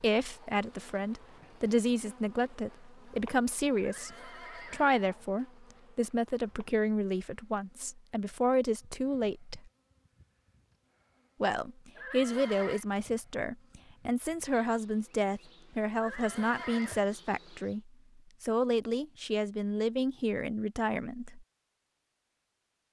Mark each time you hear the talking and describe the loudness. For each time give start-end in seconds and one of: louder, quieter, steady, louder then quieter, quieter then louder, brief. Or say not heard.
0.0-9.7 steady
11.4-21.4 steady.